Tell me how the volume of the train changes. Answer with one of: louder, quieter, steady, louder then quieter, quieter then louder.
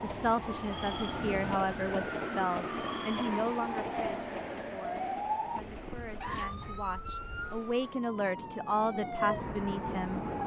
quieter then louder.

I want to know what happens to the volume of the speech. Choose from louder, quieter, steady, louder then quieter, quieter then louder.
quieter then louder.